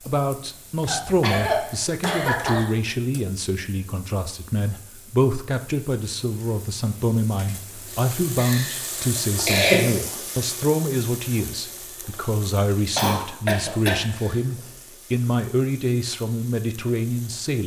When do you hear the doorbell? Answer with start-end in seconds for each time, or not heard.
not heard.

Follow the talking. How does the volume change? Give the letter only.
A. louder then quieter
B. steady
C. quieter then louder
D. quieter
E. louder
B.